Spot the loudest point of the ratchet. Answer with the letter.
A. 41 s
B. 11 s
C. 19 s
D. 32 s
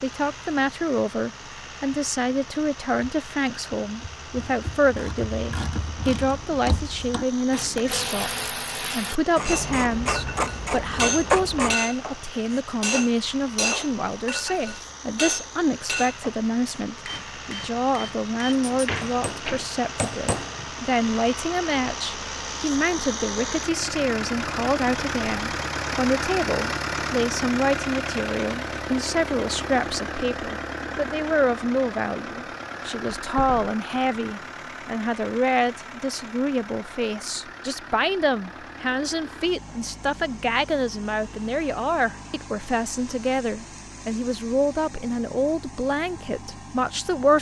B.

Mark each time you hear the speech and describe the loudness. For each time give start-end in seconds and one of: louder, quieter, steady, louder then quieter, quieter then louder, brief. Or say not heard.
0.0-47.3 steady.